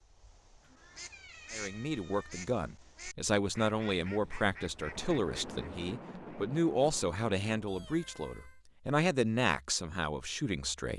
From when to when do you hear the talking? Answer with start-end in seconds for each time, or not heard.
1.5-10.9.